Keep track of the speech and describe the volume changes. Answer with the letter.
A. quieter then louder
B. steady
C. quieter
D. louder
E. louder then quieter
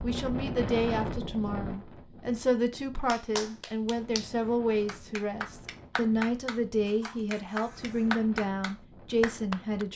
B.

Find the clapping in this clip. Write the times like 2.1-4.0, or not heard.
3.0-9.8.